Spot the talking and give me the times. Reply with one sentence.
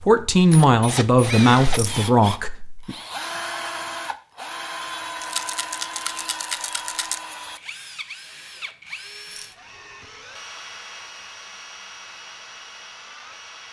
The talking can be heard from 0.0 to 3.0 s.